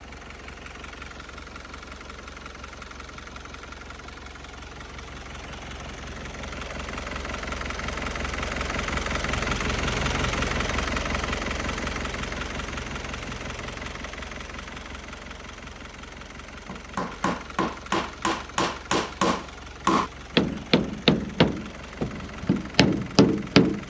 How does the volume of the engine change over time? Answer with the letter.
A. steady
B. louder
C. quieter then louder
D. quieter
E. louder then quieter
E.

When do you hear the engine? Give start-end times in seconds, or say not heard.
0.0-23.8.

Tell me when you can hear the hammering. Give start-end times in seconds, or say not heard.
16.6-23.8.